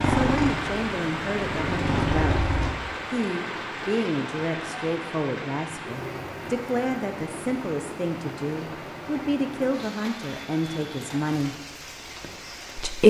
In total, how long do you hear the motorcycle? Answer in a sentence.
You can hear the motorcycle for 3 seconds altogether.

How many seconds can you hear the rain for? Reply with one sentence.
The rain can be heard for 13 seconds in total.